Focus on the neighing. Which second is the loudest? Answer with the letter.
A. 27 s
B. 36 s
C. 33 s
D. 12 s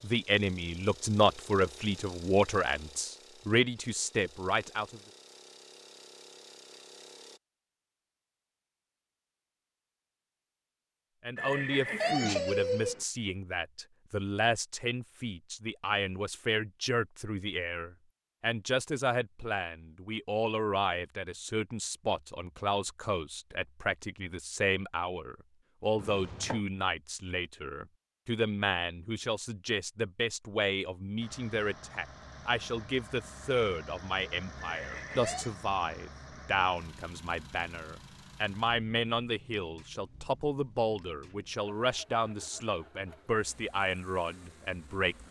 D.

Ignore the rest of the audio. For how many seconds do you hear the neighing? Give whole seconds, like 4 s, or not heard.
3 s.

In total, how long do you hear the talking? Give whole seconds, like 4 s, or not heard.
39 s.